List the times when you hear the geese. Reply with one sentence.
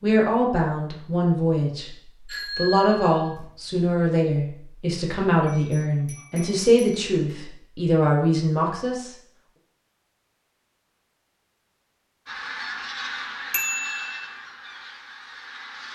You can hear the geese from 12.2 to 15.8 s.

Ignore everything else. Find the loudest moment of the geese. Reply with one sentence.
The volume of the geese peaks at 13 seconds.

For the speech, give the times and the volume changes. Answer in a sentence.
You can hear the speech from 0.0 to 9.2 s, at a steady volume.